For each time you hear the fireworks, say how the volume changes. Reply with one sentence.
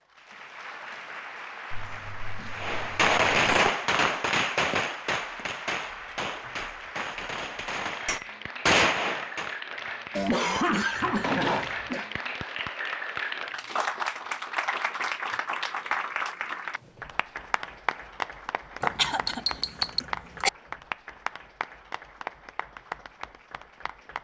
The fireworks can be heard from 2.5 to 9.6 s, getting quieter then louder.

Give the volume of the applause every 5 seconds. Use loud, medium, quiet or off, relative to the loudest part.
medium, medium, loud, loud, medium.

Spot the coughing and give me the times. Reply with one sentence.
The coughing can be heard from 1.7 to 3.7 s, from 10.2 to 12.1 s and from 18.8 to 20.5 s.